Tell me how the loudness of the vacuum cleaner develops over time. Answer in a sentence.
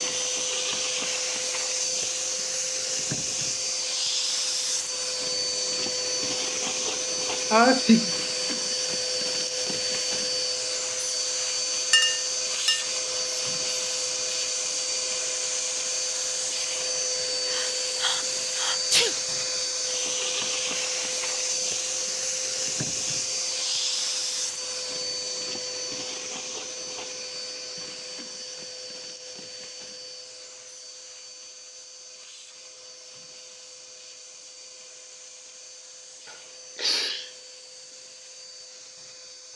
The volume of the vacuum cleaner goes down.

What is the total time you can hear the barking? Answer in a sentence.
The barking can't be heard in this clip.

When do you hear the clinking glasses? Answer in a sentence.
You can hear the clinking glasses from 11.9 to 12.8 s.